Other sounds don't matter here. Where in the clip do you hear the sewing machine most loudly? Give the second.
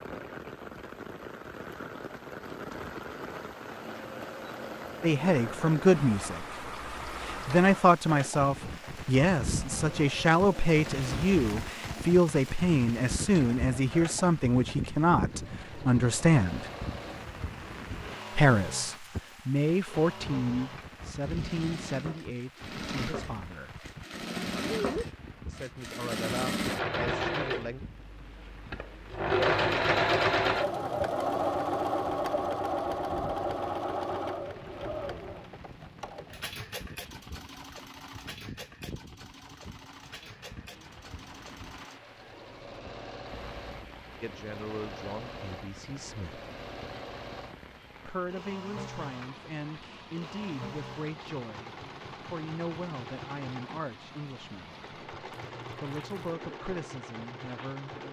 30 s.